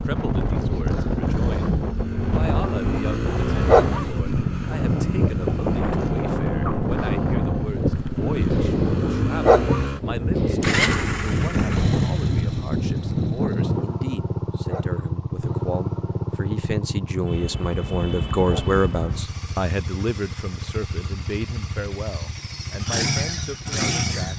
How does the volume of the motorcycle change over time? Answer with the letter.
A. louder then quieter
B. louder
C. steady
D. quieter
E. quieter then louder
C.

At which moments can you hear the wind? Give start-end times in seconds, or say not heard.
0.0-13.8.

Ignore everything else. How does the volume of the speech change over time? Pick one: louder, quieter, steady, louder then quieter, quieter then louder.
louder then quieter.